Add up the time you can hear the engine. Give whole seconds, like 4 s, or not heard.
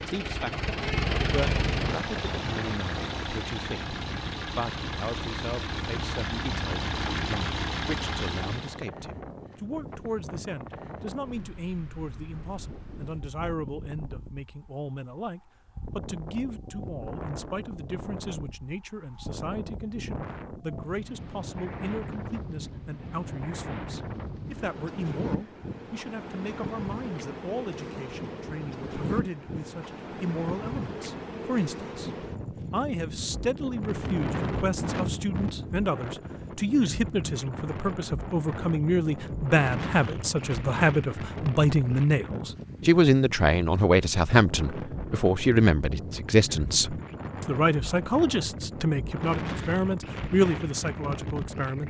9 s.